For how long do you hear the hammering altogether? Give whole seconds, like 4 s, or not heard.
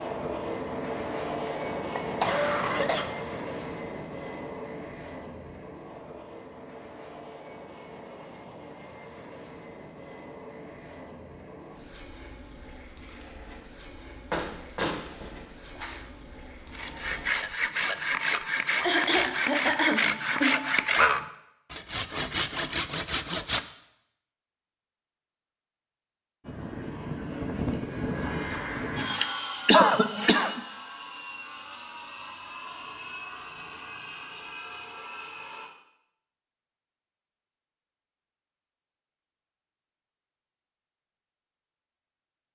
not heard.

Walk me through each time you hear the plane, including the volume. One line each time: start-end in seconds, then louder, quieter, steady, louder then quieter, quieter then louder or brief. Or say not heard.
0.0-18.2 quieter
26.4-35.7 quieter.